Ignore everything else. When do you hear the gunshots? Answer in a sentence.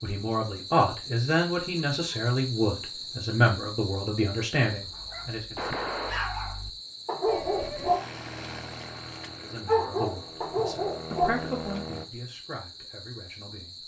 You can hear the gunshots from 5.5 to 6.3 s.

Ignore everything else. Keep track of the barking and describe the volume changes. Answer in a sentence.
The loudness of the barking goes up.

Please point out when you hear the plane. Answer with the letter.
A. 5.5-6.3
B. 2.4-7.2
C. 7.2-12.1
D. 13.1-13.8
C.